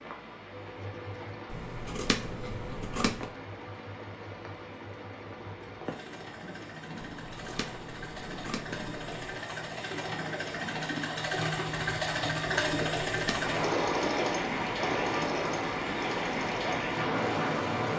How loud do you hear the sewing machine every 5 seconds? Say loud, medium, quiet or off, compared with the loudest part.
quiet, medium, loud, medium.